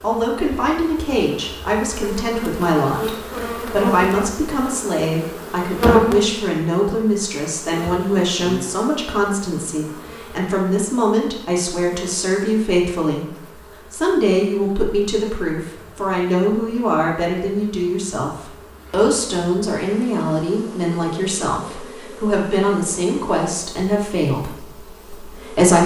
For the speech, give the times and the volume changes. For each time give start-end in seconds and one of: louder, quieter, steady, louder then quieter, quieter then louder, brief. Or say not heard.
0.0-25.8 steady.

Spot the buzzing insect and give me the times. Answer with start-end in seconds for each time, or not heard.
0.0-25.8.